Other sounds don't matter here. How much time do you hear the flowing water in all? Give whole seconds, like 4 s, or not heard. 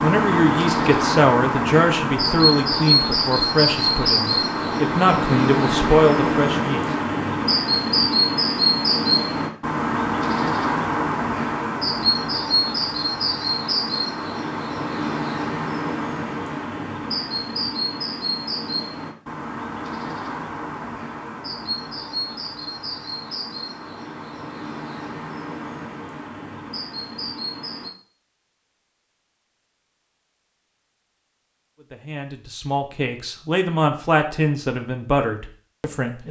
not heard.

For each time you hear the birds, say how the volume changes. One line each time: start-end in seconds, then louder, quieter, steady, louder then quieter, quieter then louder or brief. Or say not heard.
0.0-27.9 quieter.